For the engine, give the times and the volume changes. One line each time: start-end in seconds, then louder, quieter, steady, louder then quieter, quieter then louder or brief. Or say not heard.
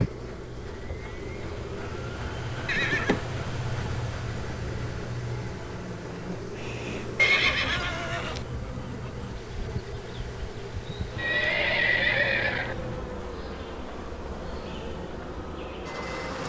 0.0-16.4 quieter.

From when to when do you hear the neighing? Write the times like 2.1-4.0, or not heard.
2.6-3.3, 7.2-8.4, 11.2-12.8.